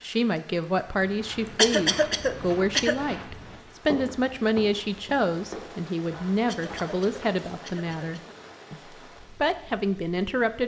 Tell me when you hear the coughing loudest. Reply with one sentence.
The volume of the coughing peaks at 2 seconds.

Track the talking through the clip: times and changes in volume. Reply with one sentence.
The talking can be heard from 0.0 to 10.6 s, at a steady volume.